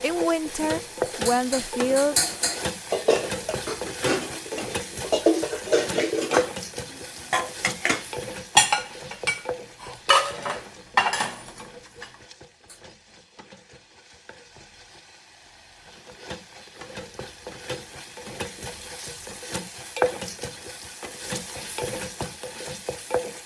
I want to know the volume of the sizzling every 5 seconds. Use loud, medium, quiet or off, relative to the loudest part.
loud, loud, quiet, medium, loud.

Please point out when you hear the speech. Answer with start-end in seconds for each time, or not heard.
0.0-2.1.